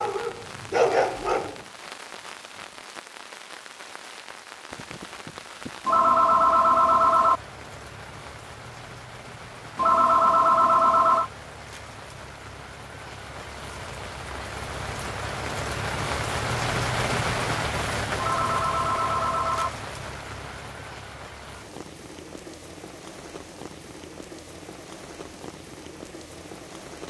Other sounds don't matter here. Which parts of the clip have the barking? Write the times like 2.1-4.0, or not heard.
0.0-1.6.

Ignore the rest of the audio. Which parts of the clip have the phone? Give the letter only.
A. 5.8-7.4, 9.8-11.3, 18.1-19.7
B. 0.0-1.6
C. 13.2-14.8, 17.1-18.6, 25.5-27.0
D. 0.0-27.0
A.